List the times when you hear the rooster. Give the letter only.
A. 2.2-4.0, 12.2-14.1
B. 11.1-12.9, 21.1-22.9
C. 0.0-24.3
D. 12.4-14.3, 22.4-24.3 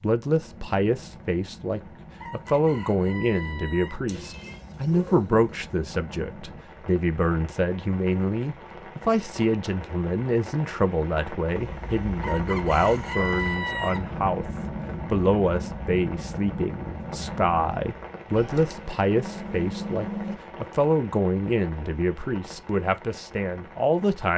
A.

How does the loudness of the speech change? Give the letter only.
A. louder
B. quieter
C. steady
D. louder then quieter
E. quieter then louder
C.